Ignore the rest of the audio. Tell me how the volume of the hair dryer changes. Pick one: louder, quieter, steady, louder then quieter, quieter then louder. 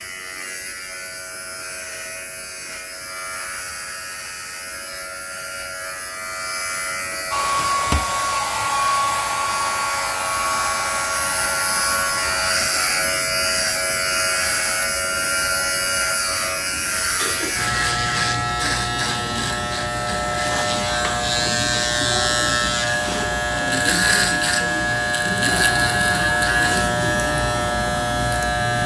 quieter.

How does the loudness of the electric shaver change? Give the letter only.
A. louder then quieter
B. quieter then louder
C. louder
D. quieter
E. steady
C.